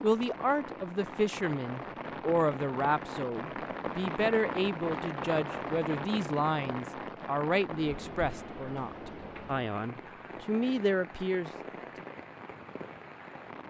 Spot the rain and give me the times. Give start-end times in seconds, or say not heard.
0.0-13.6.